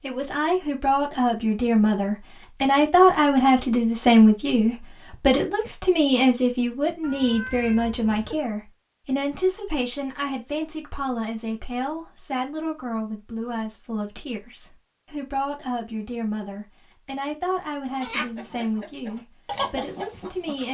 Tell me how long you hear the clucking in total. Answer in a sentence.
You can hear the clucking for 3 seconds altogether.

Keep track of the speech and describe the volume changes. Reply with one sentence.
The volume of the speech goes down.